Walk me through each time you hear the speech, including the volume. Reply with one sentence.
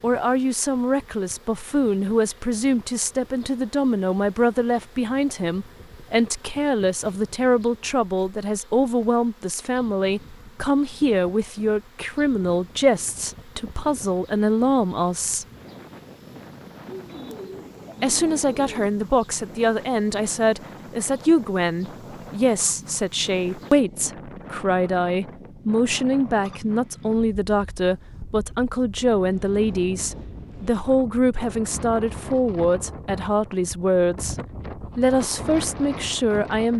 The speech can be heard from 0.0 to 15.4 s, at a steady volume; and from 18.0 to 36.7 s, at a steady volume.